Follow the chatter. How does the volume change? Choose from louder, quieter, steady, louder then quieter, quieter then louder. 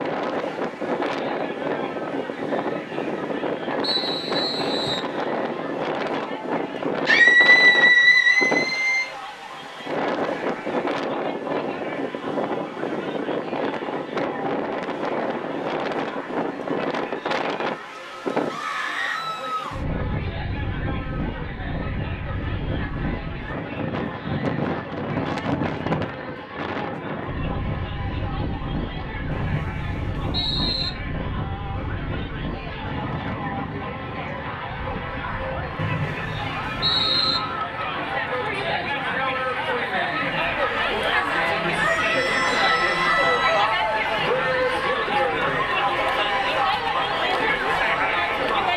louder.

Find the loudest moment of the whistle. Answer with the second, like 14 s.
37 s.